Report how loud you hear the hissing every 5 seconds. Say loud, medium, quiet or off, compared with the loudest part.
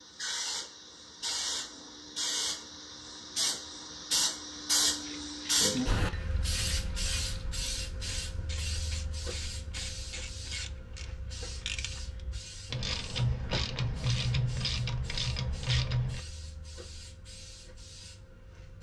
loud, loud, quiet, quiet.